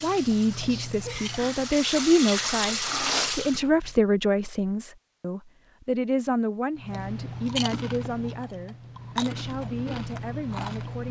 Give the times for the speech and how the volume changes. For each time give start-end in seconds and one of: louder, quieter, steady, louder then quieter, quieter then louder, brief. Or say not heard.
0.0-11.0 quieter.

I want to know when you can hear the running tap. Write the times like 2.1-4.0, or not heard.
0.0-3.6.